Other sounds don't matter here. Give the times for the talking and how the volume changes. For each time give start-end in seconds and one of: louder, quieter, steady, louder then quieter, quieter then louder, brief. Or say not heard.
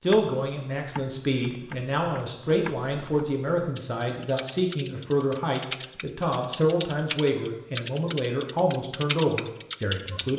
0.0-10.3 steady.